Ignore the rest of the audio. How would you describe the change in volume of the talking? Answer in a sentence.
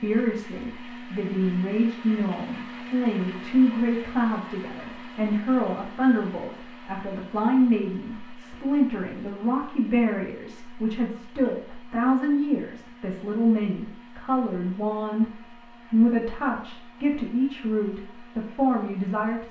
The loudness of the talking stays about the same.